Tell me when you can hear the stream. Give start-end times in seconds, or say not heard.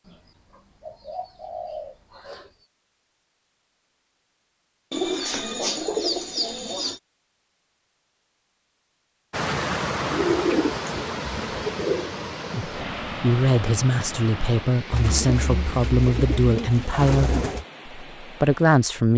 9.3-19.1.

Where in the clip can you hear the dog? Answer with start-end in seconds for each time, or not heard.
not heard.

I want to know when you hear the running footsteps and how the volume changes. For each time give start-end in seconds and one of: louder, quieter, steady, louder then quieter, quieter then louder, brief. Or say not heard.
not heard.